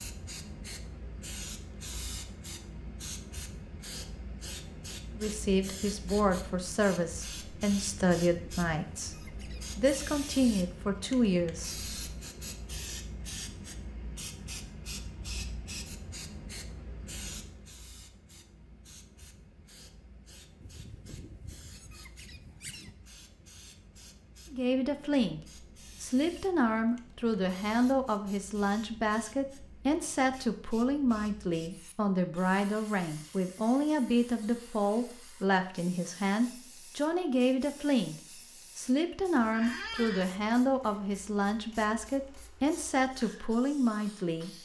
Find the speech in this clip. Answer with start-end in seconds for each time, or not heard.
5.2-11.9, 24.5-25.4, 26.0-44.5.